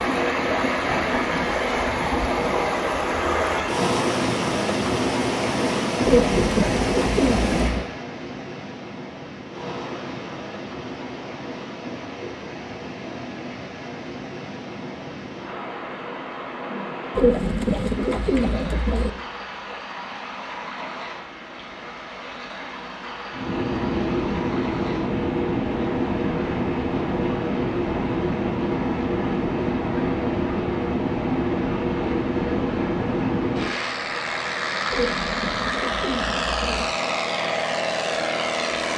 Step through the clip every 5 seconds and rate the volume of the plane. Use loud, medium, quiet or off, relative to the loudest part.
off, off, off, off, loud, loud, loud, loud.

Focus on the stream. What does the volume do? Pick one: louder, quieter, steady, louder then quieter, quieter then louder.
quieter.